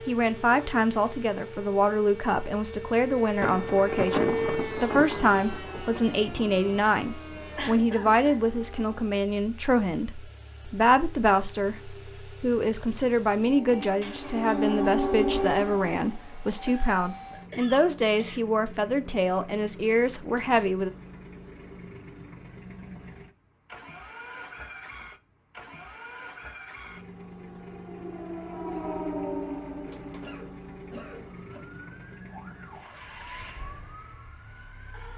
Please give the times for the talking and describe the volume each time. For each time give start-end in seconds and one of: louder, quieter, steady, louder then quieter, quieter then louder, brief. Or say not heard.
0.1-20.9 steady.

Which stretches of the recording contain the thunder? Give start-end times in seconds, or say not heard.
3.4-6.9.